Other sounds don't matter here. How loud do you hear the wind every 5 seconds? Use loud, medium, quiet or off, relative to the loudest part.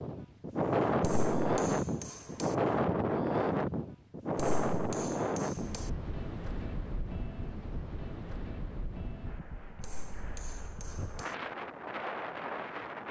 loud, medium, medium.